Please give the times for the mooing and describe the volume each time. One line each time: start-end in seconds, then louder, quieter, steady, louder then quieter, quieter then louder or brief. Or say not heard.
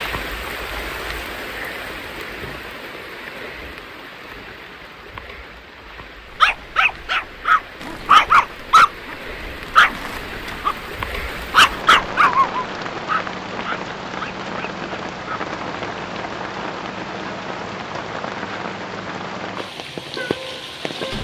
not heard.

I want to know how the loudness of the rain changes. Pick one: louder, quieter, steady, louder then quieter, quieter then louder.
quieter then louder.